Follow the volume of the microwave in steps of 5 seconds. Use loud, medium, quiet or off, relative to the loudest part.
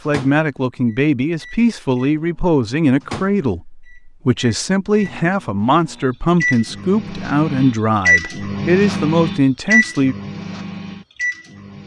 quiet, loud, medium.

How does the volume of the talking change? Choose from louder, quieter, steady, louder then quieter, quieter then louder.
steady.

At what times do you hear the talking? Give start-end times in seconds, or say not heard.
0.1-10.2.